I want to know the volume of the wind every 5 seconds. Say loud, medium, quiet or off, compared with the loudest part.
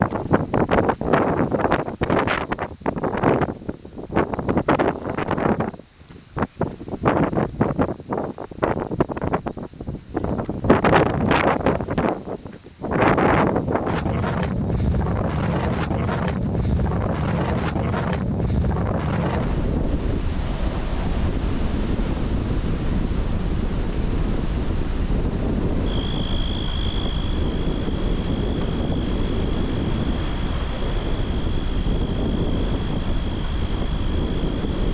loud, loud, loud, loud, medium, medium, medium.